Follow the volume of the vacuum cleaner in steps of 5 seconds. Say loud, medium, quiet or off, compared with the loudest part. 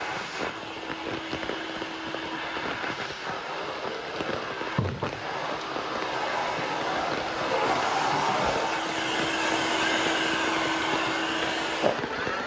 medium, loud, loud.